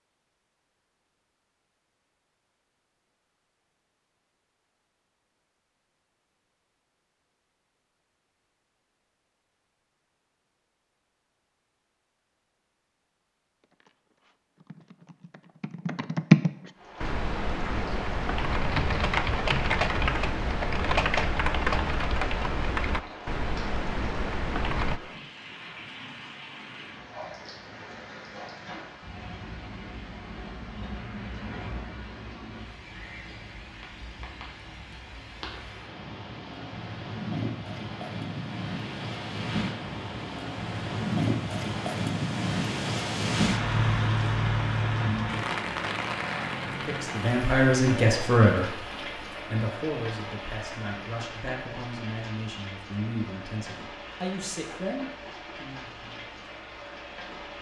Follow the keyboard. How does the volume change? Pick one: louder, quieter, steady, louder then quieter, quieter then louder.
louder then quieter.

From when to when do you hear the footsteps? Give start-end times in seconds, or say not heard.
not heard.